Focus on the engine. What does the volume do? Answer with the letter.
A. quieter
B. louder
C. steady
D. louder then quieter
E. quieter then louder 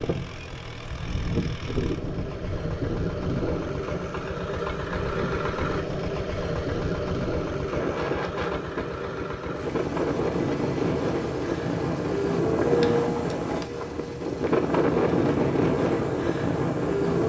D.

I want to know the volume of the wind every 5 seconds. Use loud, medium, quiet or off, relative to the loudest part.
medium, medium, loud, loud.